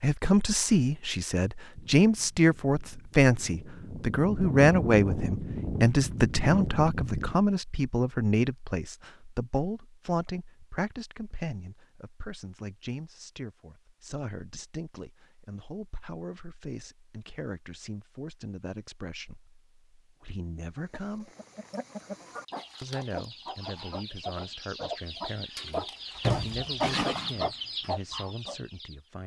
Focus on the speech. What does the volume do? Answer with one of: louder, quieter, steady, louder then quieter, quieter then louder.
quieter.